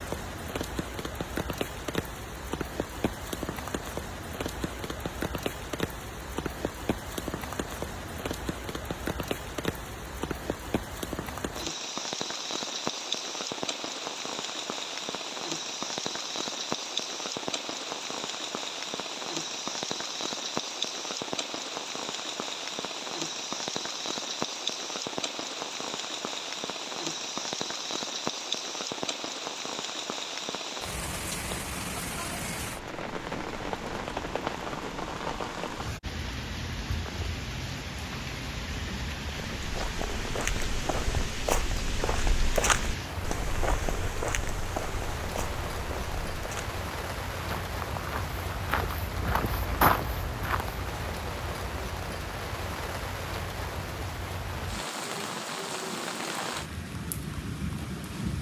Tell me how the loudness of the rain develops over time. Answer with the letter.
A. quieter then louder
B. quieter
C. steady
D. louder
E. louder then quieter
C.